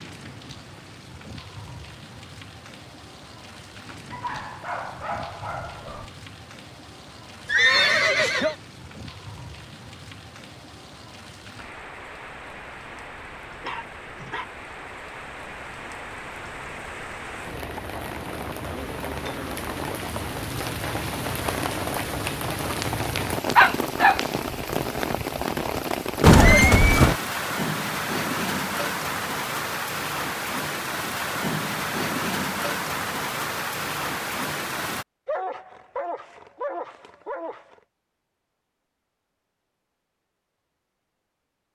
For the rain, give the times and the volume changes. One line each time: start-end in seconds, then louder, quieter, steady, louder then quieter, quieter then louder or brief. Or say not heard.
0.0-35.0 louder.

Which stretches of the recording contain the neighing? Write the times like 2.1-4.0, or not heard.
7.5-8.6, 26.2-27.1.